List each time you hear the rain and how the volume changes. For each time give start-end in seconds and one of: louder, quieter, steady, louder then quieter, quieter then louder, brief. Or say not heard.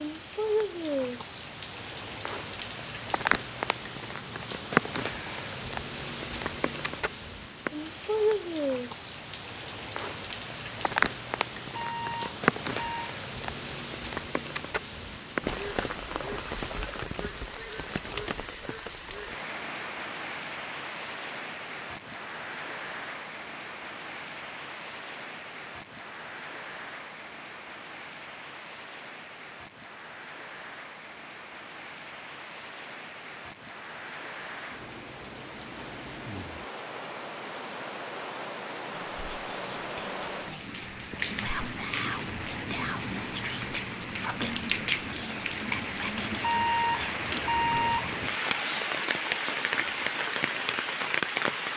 0.0-51.7 quieter then louder.